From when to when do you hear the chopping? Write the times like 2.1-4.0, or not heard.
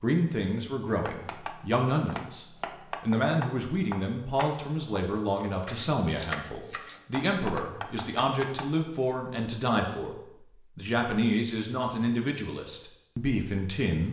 0.8-8.7.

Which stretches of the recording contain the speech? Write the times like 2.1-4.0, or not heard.
0.0-10.2, 10.8-14.0.